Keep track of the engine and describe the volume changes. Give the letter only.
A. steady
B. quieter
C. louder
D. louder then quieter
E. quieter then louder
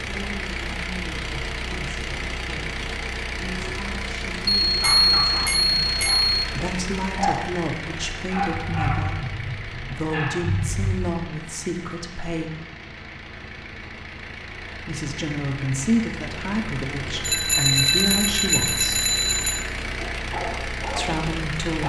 E.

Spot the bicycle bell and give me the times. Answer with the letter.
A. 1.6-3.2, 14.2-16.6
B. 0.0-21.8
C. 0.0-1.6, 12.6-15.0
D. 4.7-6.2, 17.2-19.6
D.